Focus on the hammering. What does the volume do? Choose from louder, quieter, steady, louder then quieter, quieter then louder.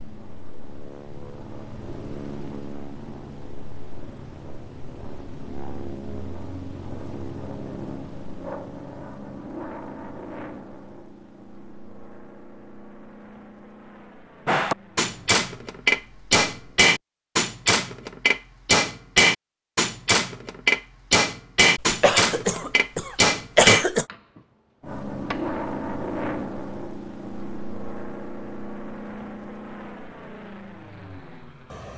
steady.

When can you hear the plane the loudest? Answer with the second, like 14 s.
26 s.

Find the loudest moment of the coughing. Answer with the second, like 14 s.
24 s.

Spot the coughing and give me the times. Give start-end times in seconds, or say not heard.
21.8-24.1.